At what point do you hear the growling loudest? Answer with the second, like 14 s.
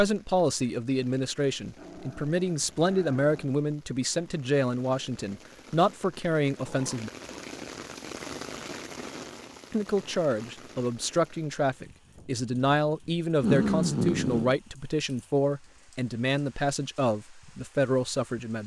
14 s.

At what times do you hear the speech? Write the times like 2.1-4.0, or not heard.
0.0-7.1, 9.7-18.6.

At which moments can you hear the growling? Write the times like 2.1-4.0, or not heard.
1.8-3.5, 6.7-7.5, 13.4-14.6.